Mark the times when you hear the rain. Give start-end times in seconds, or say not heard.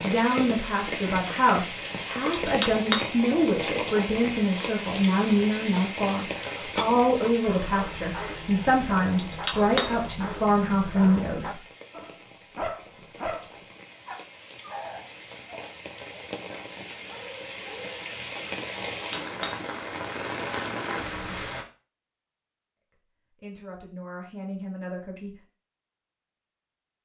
0.0-21.6.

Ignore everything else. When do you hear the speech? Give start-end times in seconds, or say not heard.
0.0-11.6, 23.3-25.4.